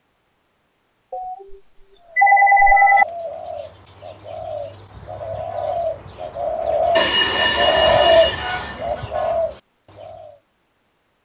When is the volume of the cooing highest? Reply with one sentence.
The loudest moment of the cooing is at 8 seconds.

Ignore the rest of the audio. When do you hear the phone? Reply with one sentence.
The phone can be heard from 1.1 to 1.6 s, from 2.1 to 3.0 s and from 7.0 to 8.8 s.